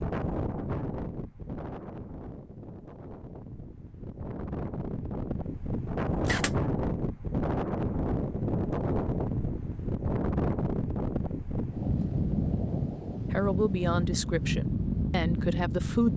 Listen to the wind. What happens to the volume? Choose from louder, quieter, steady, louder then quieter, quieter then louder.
louder.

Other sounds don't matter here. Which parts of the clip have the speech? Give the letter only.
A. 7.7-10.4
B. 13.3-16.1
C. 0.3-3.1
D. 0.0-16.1
B.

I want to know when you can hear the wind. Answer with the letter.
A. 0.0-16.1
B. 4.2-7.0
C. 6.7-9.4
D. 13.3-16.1
A.